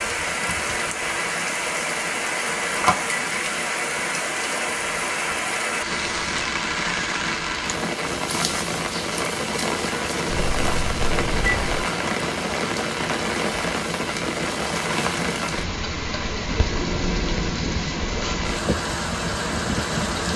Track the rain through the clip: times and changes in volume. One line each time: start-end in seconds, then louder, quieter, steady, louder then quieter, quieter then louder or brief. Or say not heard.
0.0-20.3 steady.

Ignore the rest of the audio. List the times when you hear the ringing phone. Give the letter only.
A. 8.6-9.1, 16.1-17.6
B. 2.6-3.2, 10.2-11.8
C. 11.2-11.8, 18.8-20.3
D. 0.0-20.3
B.